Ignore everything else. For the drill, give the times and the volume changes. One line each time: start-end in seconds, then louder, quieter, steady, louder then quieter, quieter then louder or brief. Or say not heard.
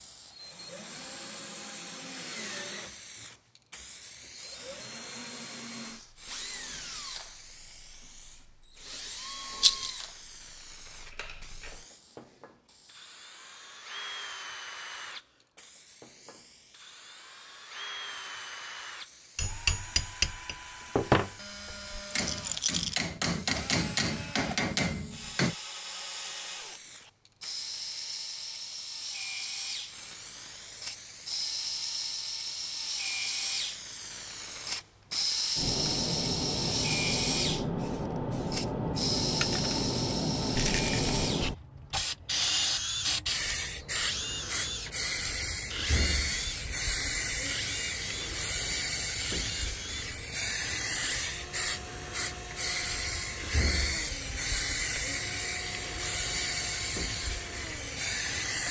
0.0-58.6 louder then quieter.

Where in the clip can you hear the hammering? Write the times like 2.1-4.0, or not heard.
19.4-25.6.